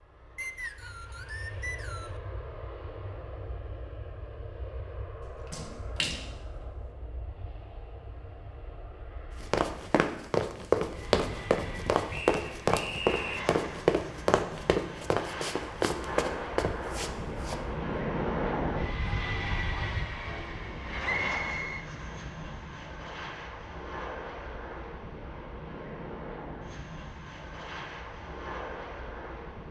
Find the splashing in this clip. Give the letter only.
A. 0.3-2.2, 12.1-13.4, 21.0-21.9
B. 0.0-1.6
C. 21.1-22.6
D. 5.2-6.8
D.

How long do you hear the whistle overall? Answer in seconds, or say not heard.
4 s.